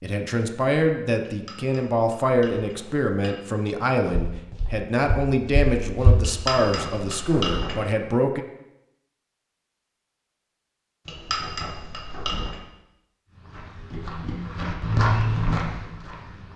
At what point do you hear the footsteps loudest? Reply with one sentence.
The loudest moment of the footsteps is at 15 seconds.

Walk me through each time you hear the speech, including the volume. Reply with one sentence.
You can hear the speech from 0.0 to 8.4 s, at a steady volume.